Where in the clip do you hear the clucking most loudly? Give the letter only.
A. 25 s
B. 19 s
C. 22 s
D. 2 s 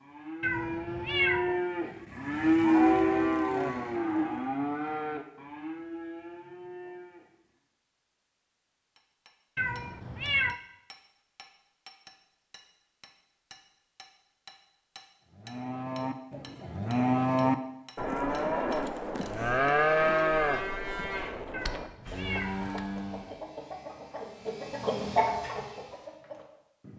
A.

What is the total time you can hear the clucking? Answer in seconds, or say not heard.
5 s.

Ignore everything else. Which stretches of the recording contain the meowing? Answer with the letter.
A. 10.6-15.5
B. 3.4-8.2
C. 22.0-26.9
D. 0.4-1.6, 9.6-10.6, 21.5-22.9
D.